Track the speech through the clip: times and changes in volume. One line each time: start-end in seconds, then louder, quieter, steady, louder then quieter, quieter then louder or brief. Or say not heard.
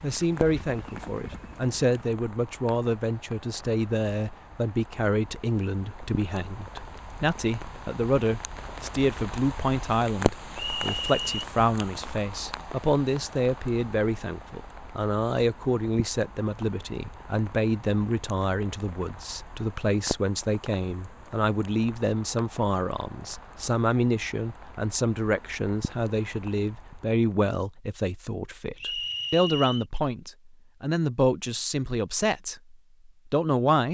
0.0-33.8 steady.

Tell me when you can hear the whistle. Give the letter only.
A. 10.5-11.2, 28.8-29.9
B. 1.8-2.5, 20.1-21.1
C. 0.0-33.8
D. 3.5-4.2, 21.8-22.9
A.